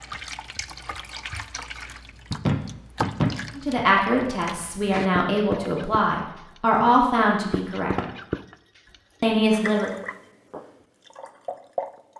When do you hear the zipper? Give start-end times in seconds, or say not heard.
not heard.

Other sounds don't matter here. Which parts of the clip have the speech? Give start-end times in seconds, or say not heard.
3.5-7.9, 9.2-9.9.